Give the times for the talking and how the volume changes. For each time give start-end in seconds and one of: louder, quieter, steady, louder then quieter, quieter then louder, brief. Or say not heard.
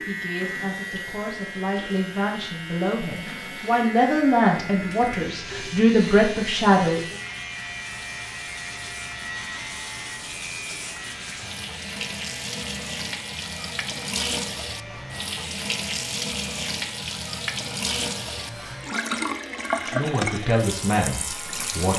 0.1-7.2 louder
19.8-21.9 brief.